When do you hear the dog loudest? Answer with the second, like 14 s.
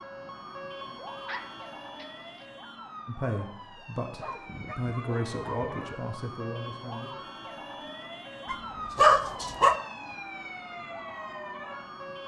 9 s.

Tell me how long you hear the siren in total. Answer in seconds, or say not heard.
12 s.